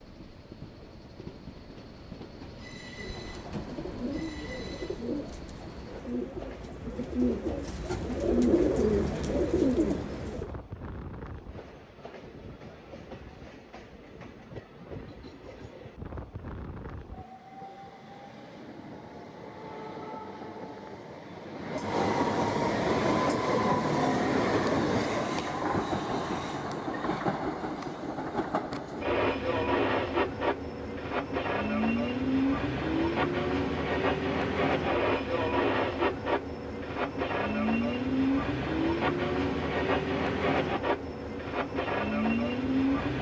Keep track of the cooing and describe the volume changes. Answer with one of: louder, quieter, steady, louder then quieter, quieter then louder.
louder.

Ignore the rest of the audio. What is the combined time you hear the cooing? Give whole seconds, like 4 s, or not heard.
8 s.